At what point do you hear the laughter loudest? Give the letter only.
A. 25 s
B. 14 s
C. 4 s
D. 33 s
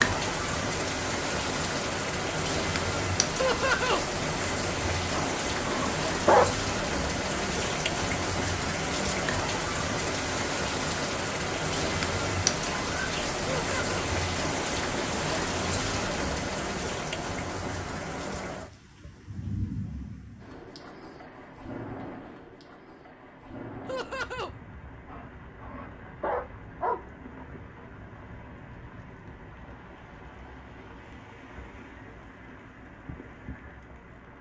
C.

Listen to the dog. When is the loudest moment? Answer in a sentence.
The volume of the dog peaks at 6 seconds.